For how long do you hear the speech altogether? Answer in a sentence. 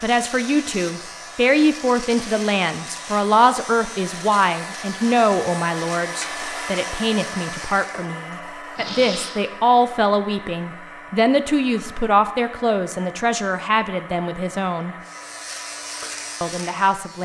The speech can be heard for 16 seconds in total.